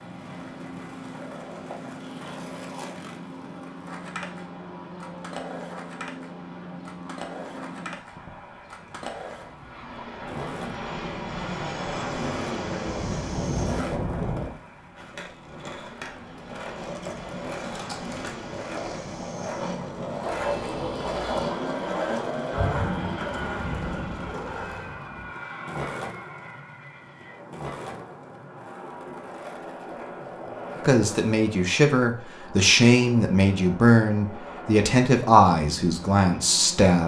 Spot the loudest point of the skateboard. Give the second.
22 s.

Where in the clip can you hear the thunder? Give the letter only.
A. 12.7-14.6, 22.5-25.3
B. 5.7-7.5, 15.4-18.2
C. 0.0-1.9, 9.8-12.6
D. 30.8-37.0
A.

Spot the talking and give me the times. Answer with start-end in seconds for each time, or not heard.
30.8-37.0.